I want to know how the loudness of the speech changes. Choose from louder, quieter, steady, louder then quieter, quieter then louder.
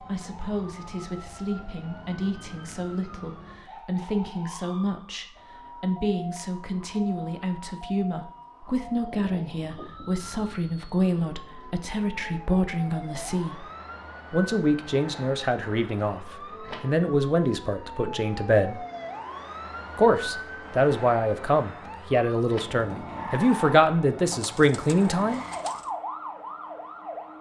louder.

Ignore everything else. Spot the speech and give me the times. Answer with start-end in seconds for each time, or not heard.
0.0-13.7, 14.3-18.9, 19.9-25.4.